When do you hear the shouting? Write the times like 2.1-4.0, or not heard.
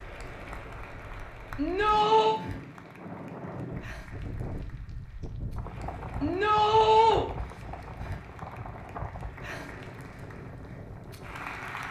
1.6-2.4, 6.2-7.2.